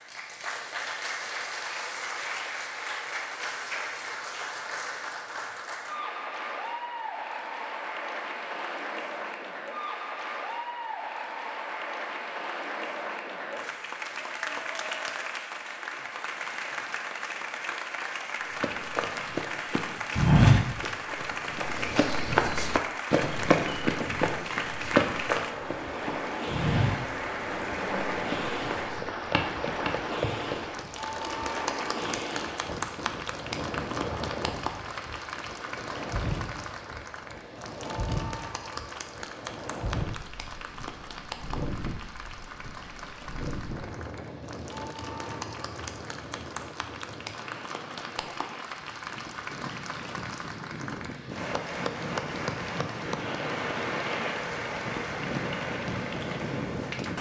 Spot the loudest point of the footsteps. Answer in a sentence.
The loudest moment of the footsteps is at 20 seconds.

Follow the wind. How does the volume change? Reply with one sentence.
The volume of the wind goes down, then up.